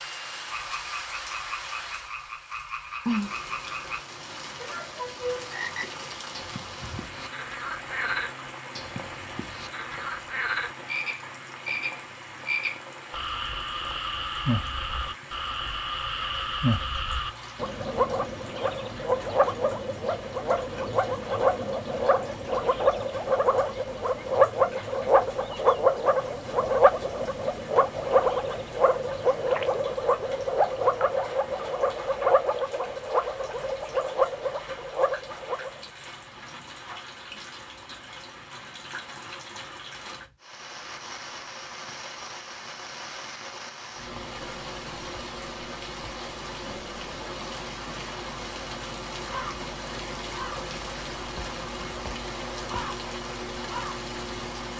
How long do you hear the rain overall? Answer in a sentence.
You can hear the rain for 55 seconds altogether.